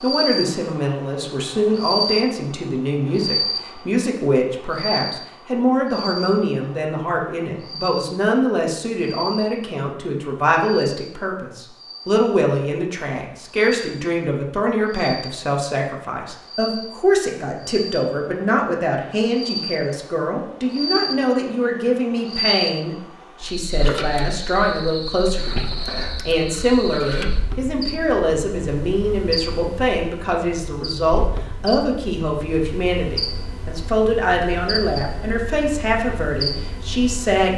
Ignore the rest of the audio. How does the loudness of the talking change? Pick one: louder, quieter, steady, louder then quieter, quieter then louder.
steady.